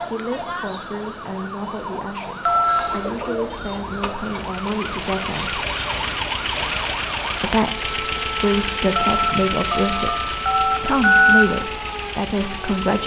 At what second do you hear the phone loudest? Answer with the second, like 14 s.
11 s.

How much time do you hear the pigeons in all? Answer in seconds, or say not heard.
2 s.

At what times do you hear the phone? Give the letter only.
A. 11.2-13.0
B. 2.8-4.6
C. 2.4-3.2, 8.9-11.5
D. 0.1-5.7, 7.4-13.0
C.